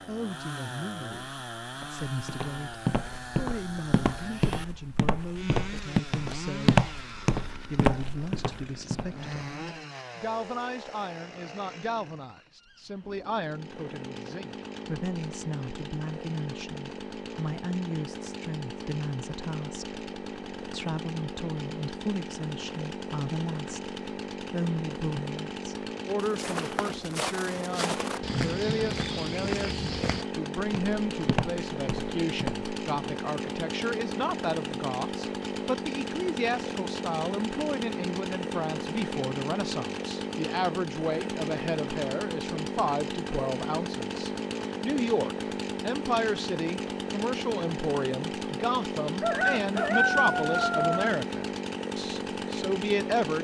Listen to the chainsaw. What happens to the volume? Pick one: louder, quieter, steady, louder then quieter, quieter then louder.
louder.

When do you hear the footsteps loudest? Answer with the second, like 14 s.
7 s.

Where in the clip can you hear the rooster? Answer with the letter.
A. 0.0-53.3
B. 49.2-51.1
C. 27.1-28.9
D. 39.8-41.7
B.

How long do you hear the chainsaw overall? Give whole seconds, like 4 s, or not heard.
53 s.